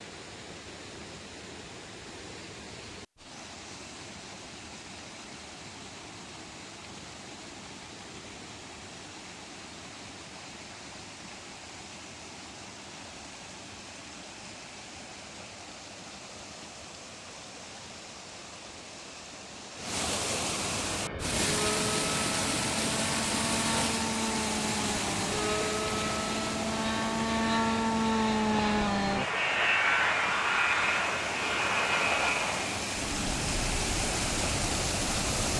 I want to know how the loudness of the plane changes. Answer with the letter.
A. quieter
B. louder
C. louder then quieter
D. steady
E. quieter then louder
C.